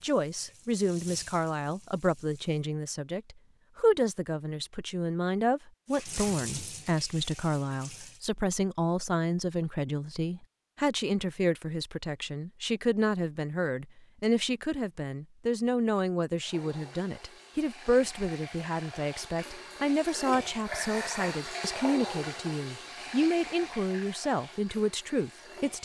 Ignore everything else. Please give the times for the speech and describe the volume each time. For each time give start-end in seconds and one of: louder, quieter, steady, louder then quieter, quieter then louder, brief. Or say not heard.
0.0-25.7 steady.